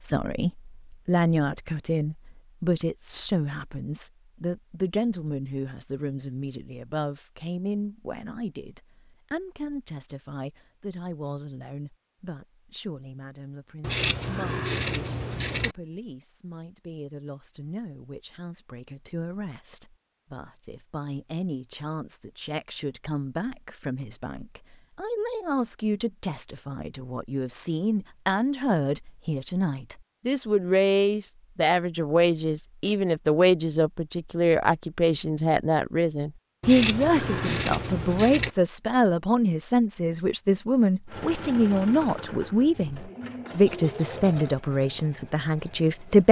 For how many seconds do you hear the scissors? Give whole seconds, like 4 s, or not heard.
4 s.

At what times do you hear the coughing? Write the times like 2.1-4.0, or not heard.
not heard.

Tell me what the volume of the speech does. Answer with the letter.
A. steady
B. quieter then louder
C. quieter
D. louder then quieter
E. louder
B.